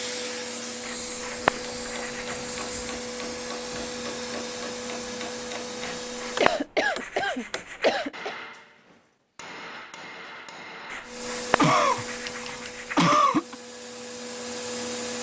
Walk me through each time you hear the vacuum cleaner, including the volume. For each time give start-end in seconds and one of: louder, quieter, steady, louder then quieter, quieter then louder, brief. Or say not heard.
0.0-6.7 steady
11.0-15.1 quieter then louder.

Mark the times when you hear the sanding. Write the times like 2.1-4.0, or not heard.
0.8-2.5, 6.0-8.1, 10.9-13.2.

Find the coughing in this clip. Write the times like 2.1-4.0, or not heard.
2.2-2.9, 6.4-8.3, 11.6-13.6.